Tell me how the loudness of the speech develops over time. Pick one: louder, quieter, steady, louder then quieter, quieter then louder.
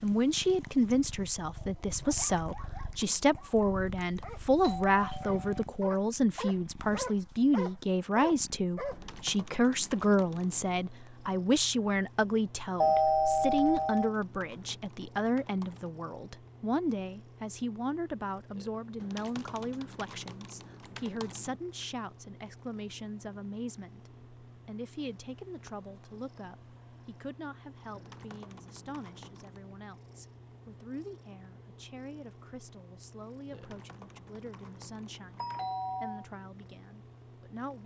quieter.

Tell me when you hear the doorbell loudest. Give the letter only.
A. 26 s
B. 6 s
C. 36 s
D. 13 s
D.